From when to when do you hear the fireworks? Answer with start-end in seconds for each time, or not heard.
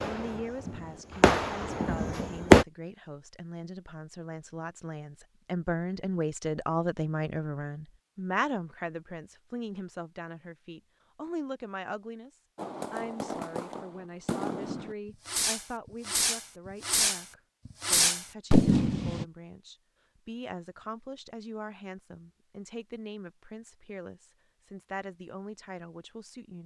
0.0-2.6, 12.6-19.2.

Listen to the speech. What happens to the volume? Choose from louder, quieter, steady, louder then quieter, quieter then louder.
louder then quieter.